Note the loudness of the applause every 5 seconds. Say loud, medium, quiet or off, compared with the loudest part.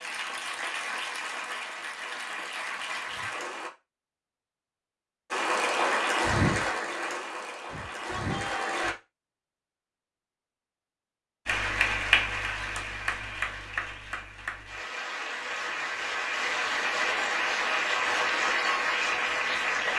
medium, loud, loud, loud.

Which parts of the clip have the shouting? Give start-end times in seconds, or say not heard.
7.7-9.0.